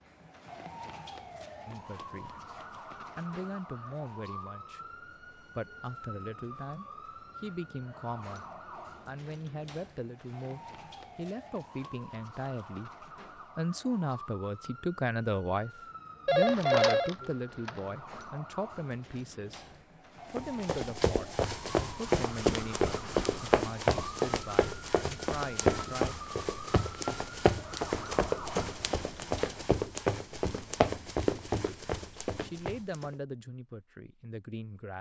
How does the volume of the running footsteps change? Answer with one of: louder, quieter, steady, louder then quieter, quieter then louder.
steady.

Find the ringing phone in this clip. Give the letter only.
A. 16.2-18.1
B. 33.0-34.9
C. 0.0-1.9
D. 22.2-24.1
A.